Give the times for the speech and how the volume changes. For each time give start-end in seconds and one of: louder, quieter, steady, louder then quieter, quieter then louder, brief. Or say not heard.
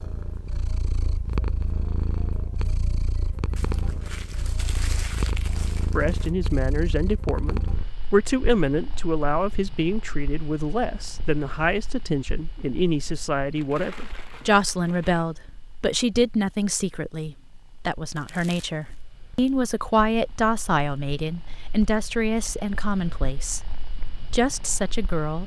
5.8-25.4 steady.